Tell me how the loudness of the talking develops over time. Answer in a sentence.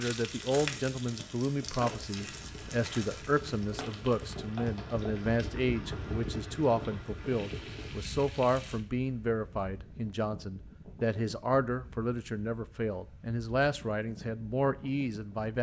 The loudness of the talking stays about the same.